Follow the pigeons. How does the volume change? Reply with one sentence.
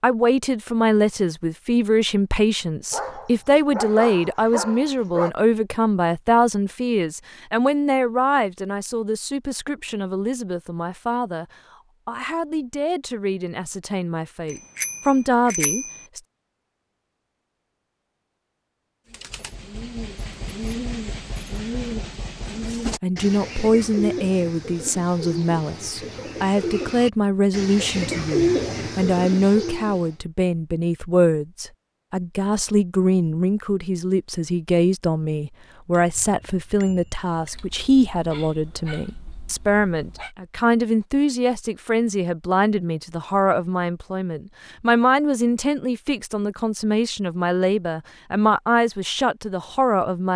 The loudness of the pigeons goes up.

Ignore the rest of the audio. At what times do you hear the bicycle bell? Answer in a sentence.
The bicycle bell can be heard from 14.5 to 15.9 s and from 35.9 to 37.3 s.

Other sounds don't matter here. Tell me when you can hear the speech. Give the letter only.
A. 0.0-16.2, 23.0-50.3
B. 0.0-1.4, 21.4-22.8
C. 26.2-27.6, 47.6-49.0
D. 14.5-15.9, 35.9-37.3
A.